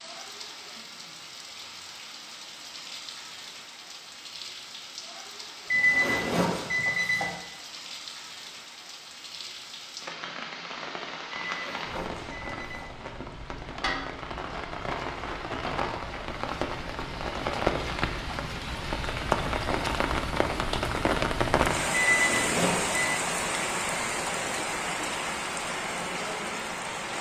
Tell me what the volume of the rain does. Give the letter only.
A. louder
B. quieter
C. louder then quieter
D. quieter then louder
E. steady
A.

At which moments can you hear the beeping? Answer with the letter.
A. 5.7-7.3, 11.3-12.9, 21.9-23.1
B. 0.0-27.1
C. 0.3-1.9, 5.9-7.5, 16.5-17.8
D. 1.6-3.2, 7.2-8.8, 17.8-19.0
A.